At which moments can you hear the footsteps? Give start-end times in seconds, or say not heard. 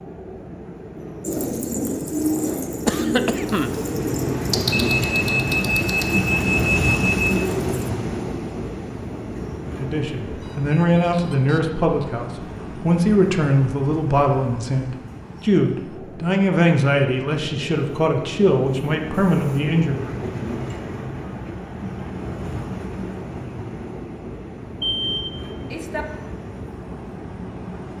not heard.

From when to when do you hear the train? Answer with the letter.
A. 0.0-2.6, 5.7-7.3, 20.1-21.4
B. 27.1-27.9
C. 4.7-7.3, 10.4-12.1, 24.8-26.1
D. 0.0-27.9
D.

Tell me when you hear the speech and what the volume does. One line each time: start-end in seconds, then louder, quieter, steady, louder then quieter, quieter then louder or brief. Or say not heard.
9.7-20.1 steady.